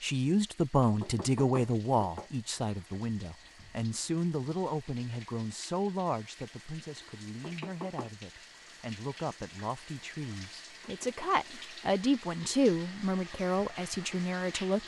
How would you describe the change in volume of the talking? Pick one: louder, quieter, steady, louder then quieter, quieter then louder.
quieter then louder.